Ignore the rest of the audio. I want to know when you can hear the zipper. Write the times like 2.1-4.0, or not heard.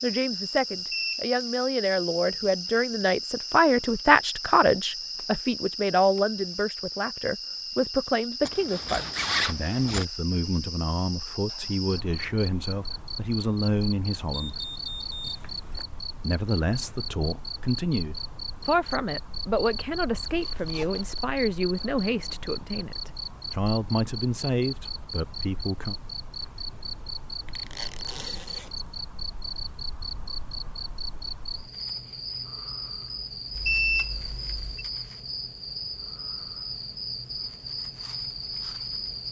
8.4-10.1, 20.2-21.3, 27.4-28.9.